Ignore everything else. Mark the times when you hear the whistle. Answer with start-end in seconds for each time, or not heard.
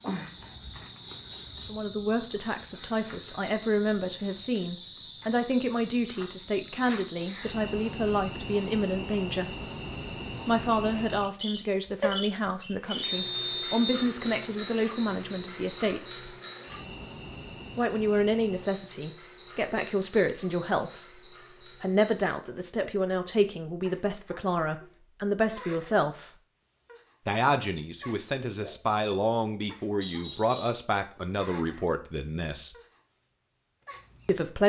1.1-1.6, 13.0-14.1, 30.0-30.9.